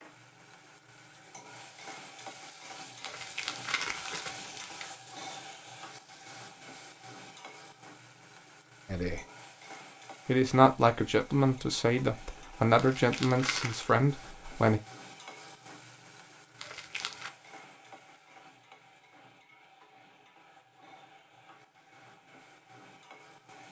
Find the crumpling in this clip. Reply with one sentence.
The crumpling can be heard from 3.0 to 5.0 s, from 12.8 to 13.9 s and from 16.6 to 17.3 s.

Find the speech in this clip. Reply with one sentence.
You can hear the speech from 8.8 to 9.2 s and from 10.2 to 14.8 s.